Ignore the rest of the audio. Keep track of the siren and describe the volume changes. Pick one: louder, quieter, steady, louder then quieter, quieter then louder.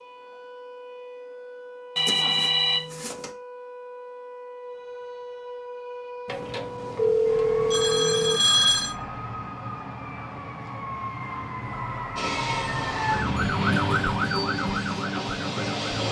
louder.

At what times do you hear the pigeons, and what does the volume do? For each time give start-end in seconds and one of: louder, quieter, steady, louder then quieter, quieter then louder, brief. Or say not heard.
not heard.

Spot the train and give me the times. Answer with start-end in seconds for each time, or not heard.
12.2-16.0.